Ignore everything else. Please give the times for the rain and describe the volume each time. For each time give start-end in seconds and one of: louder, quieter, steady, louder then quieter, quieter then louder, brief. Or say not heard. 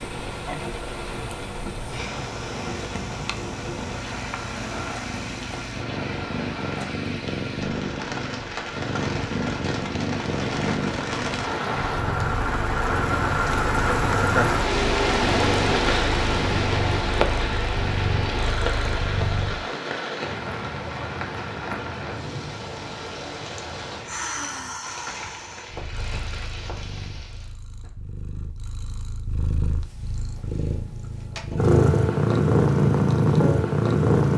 0.0-27.6 louder then quieter.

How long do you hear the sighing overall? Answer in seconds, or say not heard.
2 s.